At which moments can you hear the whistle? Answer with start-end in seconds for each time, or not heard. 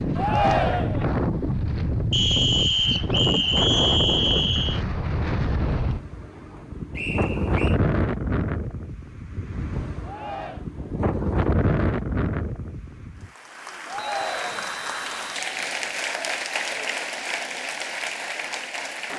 2.1-4.8, 7.0-7.8, 13.9-15.9.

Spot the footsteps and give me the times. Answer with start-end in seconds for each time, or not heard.
not heard.